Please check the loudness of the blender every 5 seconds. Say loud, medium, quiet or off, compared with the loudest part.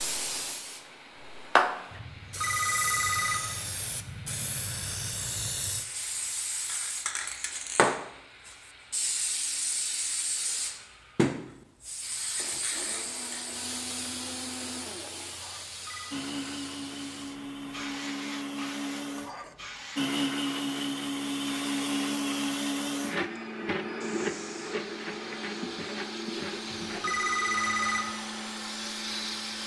quiet, quiet, quiet, medium, loud, medium.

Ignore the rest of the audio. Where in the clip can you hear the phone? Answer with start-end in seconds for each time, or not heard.
2.0-3.4, 15.7-16.2, 26.7-28.1.